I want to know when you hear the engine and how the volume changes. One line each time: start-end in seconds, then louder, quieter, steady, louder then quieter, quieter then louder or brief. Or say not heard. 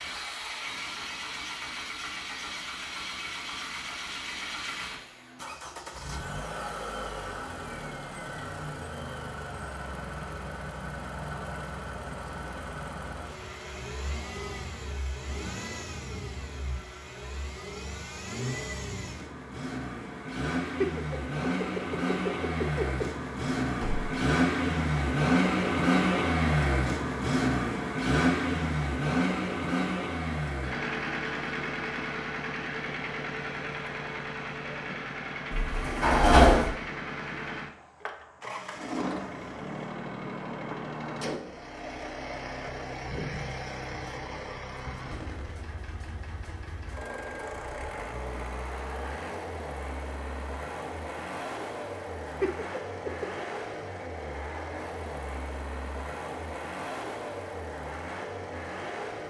0.0-59.2 louder then quieter.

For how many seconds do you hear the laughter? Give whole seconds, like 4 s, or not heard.
3 s.